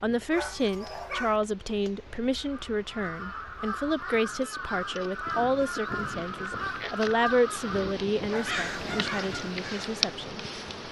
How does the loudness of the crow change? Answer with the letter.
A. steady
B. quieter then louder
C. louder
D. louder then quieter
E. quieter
A.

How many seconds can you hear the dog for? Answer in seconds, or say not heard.
2 s.